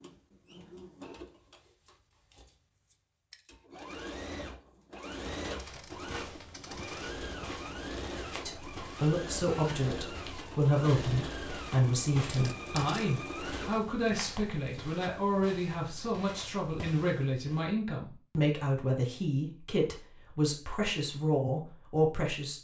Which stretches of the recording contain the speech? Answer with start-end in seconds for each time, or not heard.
8.4-22.5.